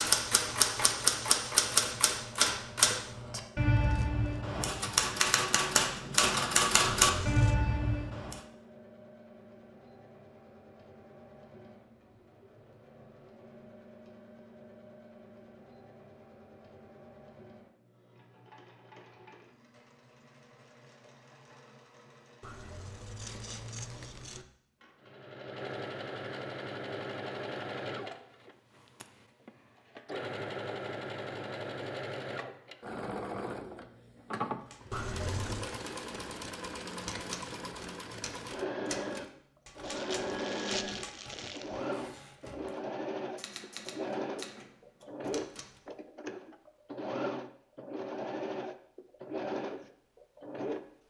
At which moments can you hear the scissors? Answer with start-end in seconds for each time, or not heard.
6.8-7.5, 22.4-24.4, 34.9-35.6.